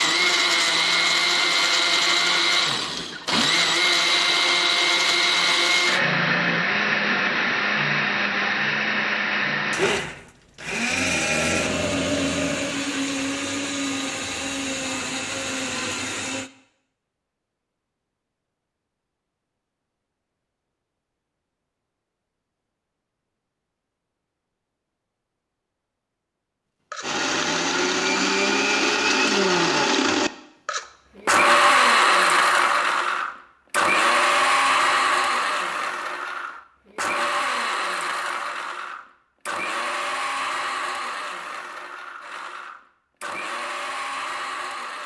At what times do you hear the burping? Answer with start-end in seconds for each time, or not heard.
10.8-12.8.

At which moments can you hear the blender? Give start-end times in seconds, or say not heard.
0.0-16.5, 26.9-45.0.